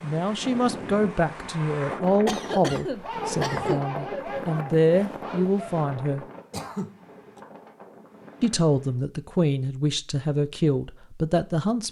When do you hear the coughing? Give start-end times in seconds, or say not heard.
2.2-3.9, 6.5-7.4.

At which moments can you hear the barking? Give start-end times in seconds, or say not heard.
3.0-5.8.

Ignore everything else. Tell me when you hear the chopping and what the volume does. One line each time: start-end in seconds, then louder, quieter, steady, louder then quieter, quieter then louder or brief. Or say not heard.
not heard.